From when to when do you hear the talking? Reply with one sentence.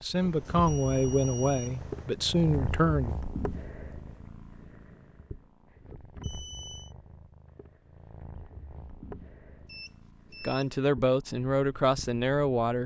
The talking can be heard from 0.0 to 3.1 s and from 10.4 to 12.8 s.